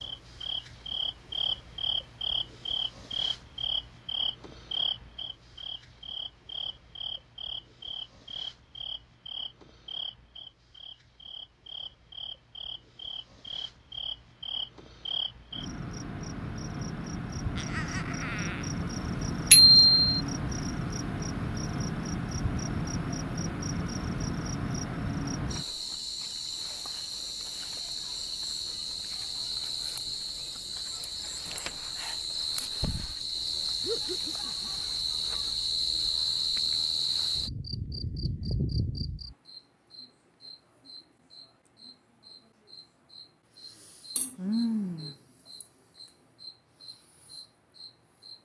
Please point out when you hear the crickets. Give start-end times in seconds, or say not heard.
0.0-48.4.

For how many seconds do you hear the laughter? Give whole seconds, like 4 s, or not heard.
2 s.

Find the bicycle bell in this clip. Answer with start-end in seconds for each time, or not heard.
19.5-20.1.